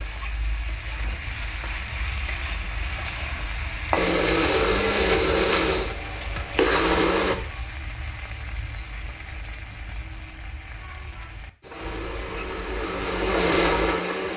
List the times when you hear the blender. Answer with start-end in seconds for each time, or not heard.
4.0-7.3, 11.6-14.3.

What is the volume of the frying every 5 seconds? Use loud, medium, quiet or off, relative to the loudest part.
loud, medium, medium.